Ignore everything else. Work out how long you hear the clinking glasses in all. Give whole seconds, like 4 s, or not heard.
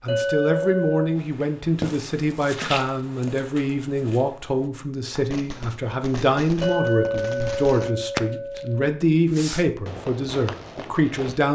3 s.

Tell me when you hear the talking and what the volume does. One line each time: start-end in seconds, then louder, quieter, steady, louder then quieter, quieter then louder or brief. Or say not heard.
0.0-11.4 steady.